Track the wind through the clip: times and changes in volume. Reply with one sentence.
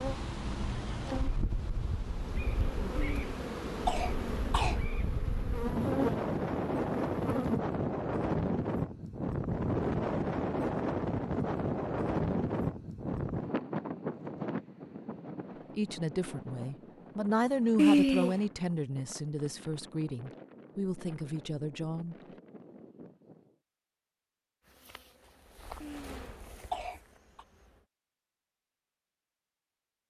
The wind can be heard from 0.0 to 23.6 s, getting louder then quieter.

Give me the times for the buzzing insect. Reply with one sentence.
The buzzing insect can be heard from 0.0 to 7.6 s and from 24.6 to 27.9 s.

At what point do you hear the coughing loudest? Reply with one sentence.
The volume of the coughing peaks at 18 seconds.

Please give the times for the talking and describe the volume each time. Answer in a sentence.
The talking can be heard from 15.8 to 22.1 s, getting louder then quieter.